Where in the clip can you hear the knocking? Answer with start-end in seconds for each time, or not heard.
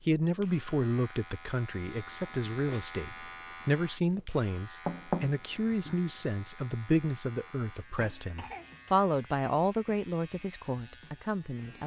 4.8-6.0.